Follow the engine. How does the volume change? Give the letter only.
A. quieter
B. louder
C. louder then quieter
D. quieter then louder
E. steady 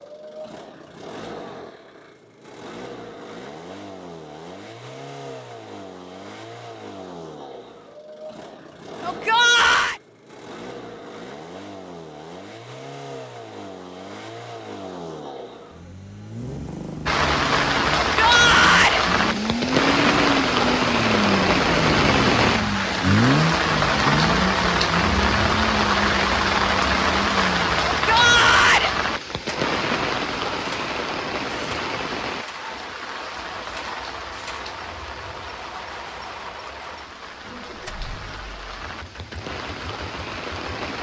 C.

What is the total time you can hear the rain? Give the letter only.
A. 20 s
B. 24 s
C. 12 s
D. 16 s
B.